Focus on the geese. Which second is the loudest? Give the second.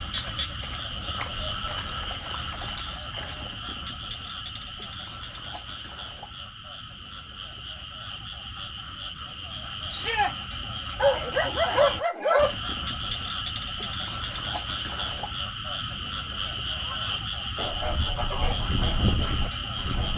19 s.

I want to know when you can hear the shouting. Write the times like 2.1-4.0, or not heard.
9.8-10.3.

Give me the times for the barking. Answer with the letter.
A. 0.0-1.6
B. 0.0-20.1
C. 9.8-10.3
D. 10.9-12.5
D.